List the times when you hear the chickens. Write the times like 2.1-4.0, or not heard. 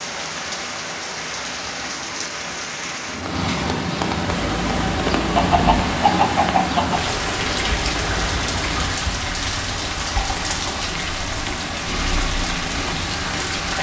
5.2-7.2.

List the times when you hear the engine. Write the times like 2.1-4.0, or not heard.
4.3-8.9.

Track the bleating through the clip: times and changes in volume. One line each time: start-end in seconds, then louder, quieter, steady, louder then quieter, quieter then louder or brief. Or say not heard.
not heard.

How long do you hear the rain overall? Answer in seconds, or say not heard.
14 s.